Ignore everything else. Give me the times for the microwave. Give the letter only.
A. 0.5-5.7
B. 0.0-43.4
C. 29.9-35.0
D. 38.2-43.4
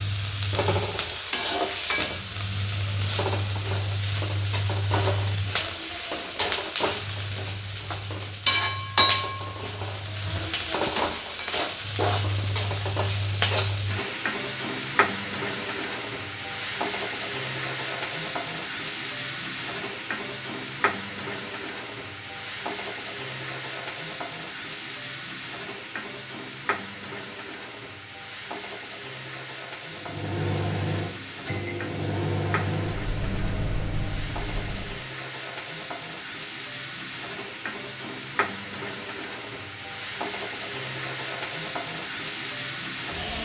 C.